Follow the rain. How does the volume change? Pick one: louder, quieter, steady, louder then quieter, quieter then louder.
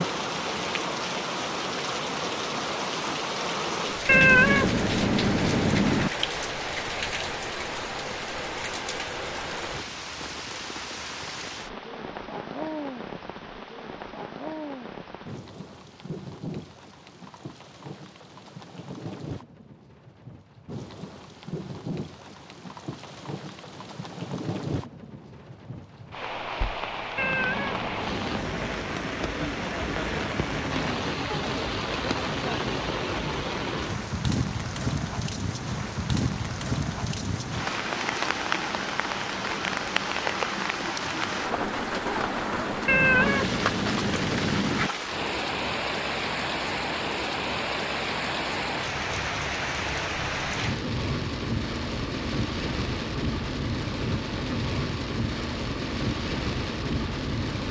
quieter then louder.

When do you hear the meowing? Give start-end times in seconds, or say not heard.
4.0-6.1, 27.1-28.9, 42.9-44.9.